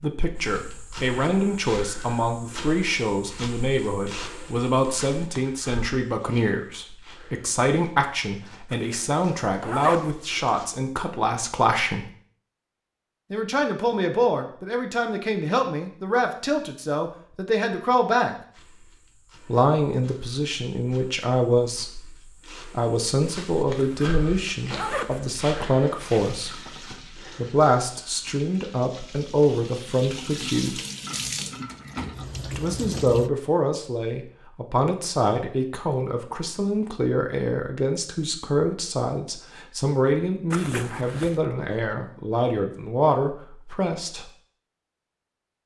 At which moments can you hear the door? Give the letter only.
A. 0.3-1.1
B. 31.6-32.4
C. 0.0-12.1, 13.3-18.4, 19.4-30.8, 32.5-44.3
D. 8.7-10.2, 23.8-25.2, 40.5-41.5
B.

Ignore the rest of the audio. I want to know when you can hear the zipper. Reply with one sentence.
The zipper can be heard from 8.7 to 10.2 s, from 23.8 to 25.2 s and from 40.5 to 41.5 s.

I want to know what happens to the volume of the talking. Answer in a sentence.
The volume of the talking stays about the same.